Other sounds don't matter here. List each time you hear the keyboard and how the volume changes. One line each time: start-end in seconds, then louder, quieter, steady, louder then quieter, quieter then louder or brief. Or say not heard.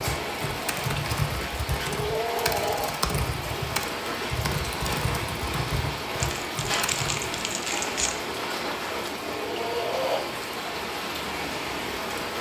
0.0-7.4 steady.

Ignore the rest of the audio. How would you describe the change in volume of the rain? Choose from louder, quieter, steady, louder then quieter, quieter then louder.
steady.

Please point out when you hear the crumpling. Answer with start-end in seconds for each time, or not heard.
6.2-8.2.